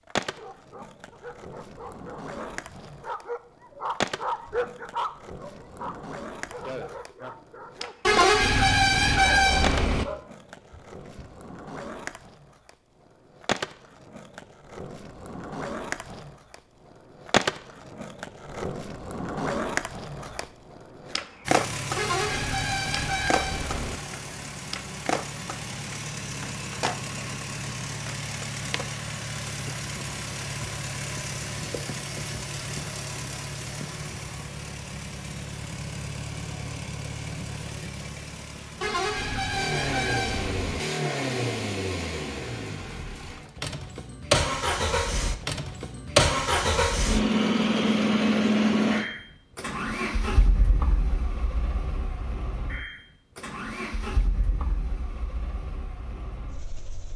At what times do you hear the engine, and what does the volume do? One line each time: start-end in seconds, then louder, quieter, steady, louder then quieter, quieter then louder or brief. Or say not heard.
21.4-57.1 louder then quieter.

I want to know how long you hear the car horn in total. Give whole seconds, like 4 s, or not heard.
6 s.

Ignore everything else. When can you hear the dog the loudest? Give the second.
4 s.